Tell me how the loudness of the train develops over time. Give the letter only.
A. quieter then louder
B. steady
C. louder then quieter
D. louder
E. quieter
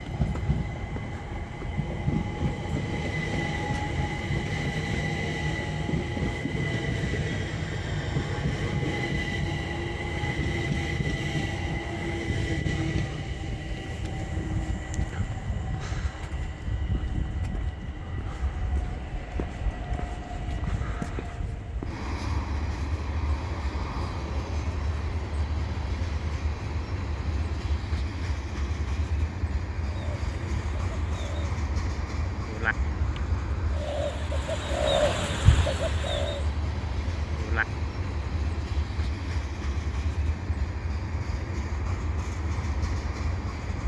E.